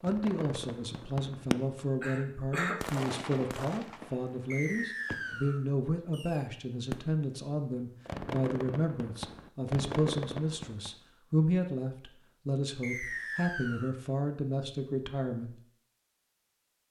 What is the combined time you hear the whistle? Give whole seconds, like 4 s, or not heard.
2 s.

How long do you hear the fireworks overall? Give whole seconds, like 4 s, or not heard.
10 s.